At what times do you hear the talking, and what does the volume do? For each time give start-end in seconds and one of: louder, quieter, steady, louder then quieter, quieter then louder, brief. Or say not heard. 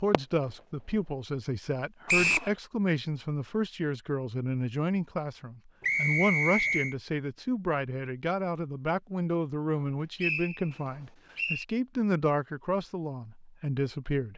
0.0-14.3 steady.